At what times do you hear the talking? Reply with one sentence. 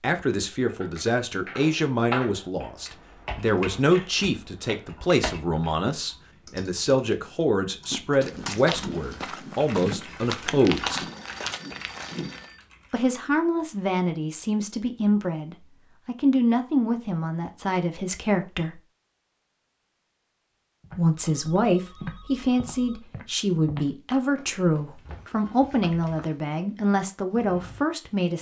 The talking can be heard from 0.0 to 11.1 s, from 12.9 to 18.8 s and from 20.9 to 28.3 s.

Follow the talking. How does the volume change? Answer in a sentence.
The loudness of the talking stays about the same.